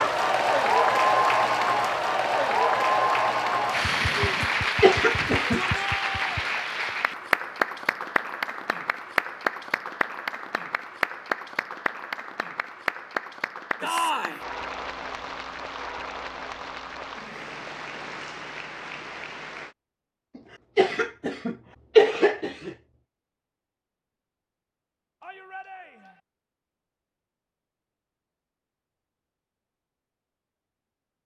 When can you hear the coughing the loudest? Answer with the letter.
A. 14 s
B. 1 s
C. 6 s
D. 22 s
D.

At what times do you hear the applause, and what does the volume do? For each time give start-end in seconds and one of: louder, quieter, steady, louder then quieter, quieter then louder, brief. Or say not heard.
0.0-19.8 quieter.